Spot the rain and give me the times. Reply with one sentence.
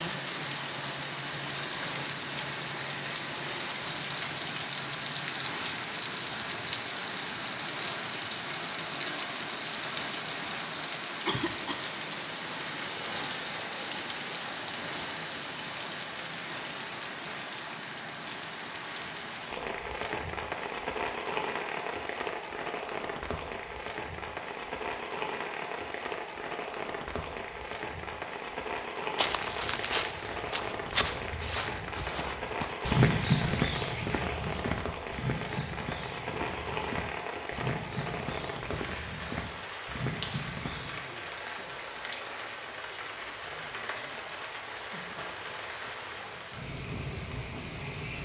The rain can be heard from 0.0 to 48.2 s.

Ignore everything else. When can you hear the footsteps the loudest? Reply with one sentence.
The volume of the footsteps peaks at 33 seconds.